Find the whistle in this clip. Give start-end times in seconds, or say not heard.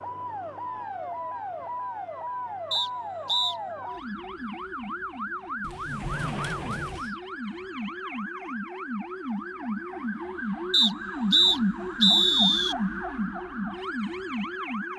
2.7-3.5, 10.7-12.8.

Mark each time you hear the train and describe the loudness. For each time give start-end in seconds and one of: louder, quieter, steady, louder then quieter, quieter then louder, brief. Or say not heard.
not heard.